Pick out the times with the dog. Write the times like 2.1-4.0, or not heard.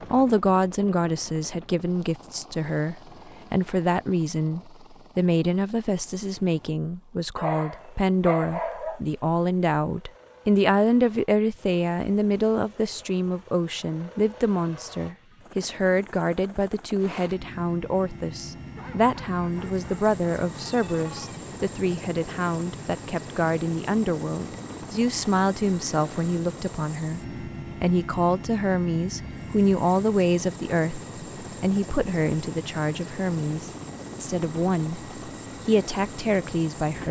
7.3-9.0, 18.8-21.4.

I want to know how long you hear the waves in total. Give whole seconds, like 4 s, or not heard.
not heard.